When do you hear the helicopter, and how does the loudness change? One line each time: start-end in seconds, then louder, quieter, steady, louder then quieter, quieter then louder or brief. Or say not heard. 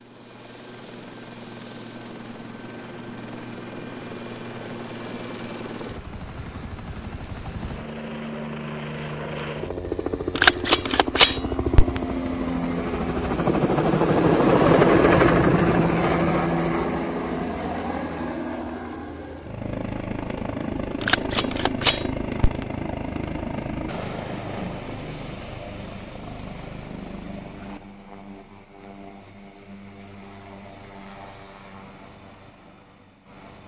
0.0-33.6 louder then quieter.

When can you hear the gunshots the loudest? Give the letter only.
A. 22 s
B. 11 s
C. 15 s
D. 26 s
B.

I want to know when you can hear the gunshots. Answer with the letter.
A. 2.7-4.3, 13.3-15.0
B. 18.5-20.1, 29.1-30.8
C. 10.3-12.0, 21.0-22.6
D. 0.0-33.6
C.